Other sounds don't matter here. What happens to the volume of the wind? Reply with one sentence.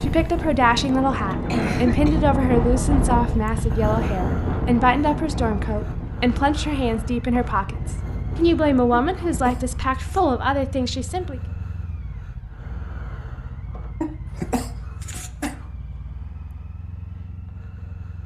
The loudness of the wind goes down.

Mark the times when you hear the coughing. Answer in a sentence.
The coughing can be heard from 1.2 to 2.2 s, from 8.9 to 10.2 s and from 14.0 to 15.6 s.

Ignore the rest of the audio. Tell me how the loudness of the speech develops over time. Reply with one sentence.
The loudness of the speech stays about the same.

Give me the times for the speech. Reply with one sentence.
The speech can be heard from 0.0 to 11.4 s.